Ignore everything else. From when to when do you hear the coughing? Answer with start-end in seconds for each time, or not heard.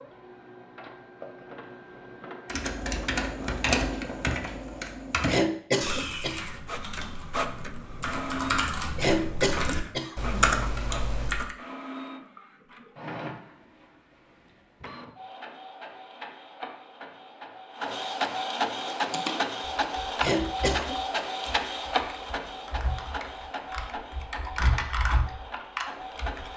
5.2-6.5, 8.9-10.5, 20.2-21.0.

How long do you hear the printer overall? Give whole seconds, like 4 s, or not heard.
24 s.